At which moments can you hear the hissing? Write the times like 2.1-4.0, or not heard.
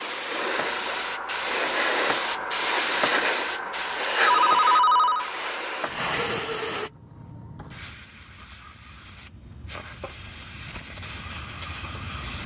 0.0-12.4.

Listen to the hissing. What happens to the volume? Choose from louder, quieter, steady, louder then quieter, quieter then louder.
quieter then louder.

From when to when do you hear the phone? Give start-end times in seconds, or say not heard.
4.2-5.3.